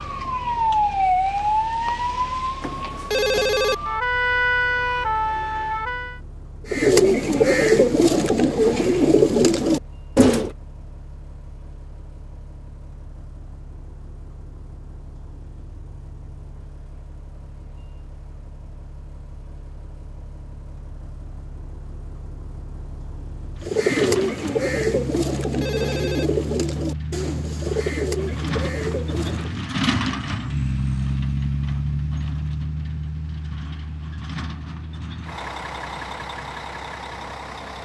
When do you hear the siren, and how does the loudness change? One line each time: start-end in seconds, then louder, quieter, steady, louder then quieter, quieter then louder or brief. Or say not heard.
0.0-6.2 quieter then louder.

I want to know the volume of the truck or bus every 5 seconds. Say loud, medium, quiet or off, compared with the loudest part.
quiet, quiet, quiet, quiet, medium, loud, loud, medium.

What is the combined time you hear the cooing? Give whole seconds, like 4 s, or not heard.
10 s.